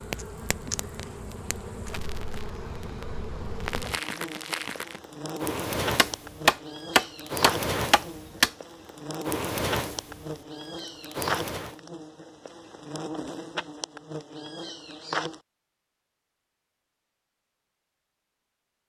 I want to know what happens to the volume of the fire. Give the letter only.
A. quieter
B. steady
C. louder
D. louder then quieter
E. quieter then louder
C.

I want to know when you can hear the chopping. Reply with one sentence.
You can hear the chopping from 6.0 to 8.5 s.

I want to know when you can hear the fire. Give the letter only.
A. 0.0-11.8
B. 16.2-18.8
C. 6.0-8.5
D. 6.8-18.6
A.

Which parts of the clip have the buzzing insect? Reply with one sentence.
The buzzing insect can be heard from 0.0 to 15.4 s.